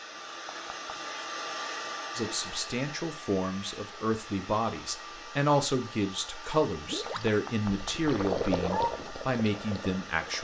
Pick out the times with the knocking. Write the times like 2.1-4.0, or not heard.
0.5-0.9, 7.0-8.9.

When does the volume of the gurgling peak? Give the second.
8 s.